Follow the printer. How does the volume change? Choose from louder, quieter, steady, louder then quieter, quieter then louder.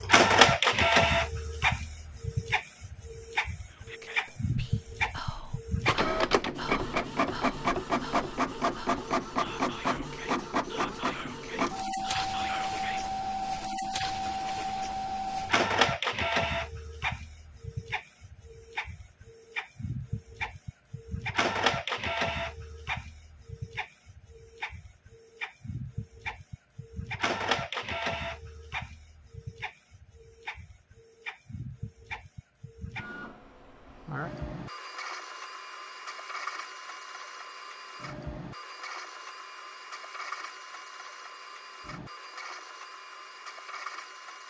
quieter.